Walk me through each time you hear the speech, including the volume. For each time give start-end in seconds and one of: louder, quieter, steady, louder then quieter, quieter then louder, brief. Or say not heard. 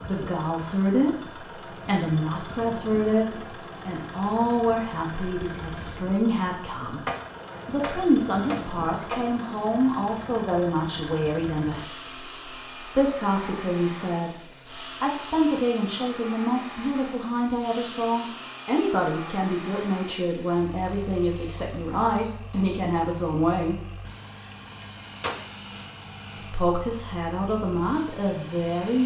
0.1-7.0 steady
7.7-23.9 steady
26.4-29.0 brief.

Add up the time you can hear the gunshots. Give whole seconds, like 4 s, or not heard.
3 s.